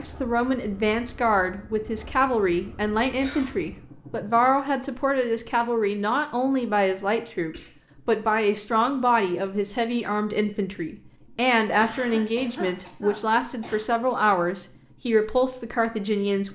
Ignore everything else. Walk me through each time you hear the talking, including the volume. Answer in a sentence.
The talking can be heard from 0.0 to 16.5 s, at a steady volume.